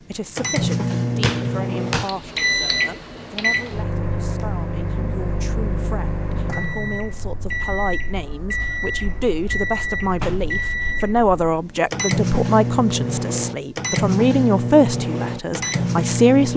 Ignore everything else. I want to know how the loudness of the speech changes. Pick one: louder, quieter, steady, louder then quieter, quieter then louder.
louder.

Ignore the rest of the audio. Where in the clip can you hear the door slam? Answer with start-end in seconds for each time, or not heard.
1.2-2.1, 10.2-10.7.